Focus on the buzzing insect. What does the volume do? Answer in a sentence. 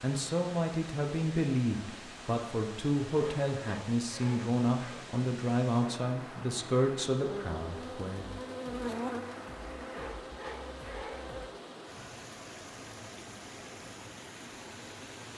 The volume of the buzzing insect goes up, then down.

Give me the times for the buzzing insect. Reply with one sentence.
You can hear the buzzing insect from 7.2 to 11.5 s.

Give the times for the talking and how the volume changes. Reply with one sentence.
The talking can be heard from 0.0 to 8.2 s, at a steady volume.